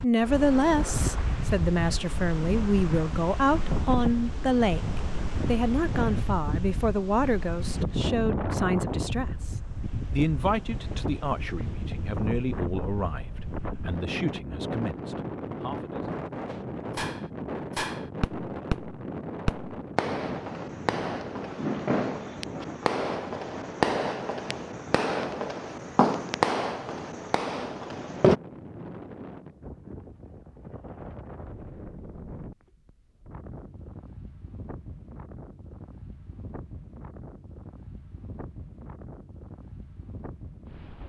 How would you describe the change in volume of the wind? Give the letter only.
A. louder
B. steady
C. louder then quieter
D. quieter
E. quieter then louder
D.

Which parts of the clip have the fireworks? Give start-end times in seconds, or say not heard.
16.4-28.4.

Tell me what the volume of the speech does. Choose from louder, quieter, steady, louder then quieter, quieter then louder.
quieter.